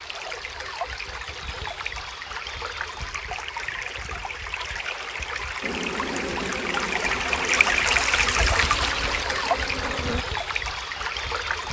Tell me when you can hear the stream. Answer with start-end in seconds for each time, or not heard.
0.0-11.6.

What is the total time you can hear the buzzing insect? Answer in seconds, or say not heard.
5 s.